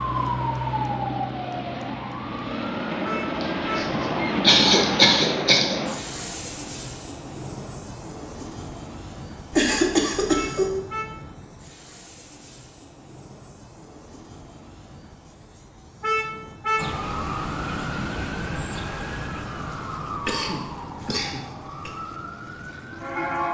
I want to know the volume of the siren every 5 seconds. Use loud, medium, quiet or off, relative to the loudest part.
loud, off, off, loud, loud.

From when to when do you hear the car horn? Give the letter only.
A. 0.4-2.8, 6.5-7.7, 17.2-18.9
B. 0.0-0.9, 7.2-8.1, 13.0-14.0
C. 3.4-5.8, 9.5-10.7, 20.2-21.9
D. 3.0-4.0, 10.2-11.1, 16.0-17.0
D.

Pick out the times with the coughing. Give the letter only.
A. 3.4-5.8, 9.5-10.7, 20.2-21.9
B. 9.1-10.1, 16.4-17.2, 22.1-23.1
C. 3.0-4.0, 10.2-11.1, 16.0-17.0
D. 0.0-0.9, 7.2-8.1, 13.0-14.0
A.